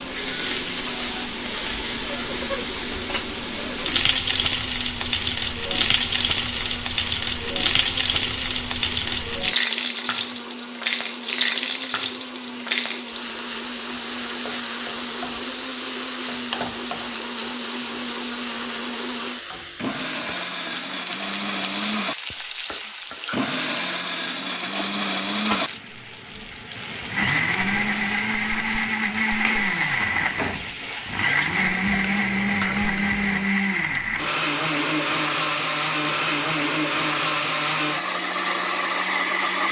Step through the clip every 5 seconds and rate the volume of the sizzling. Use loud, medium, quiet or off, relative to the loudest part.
loud, loud, loud, medium, medium, medium, medium, off.